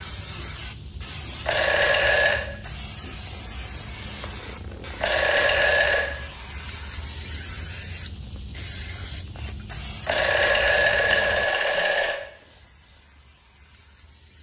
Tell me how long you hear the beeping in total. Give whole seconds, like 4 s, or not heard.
4 s.